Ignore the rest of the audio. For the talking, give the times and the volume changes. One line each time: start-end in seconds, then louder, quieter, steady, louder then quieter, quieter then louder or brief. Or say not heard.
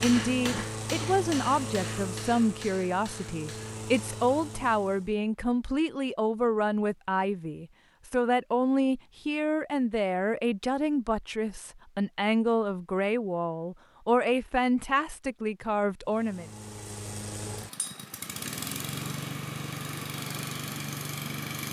0.0-16.5 steady.